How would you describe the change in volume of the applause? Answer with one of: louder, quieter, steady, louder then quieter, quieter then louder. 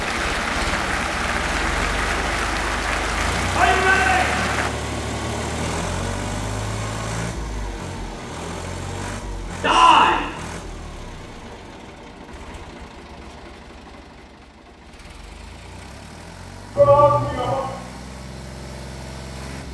steady.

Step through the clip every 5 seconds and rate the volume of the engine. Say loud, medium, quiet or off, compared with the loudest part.
loud, loud, medium, medium.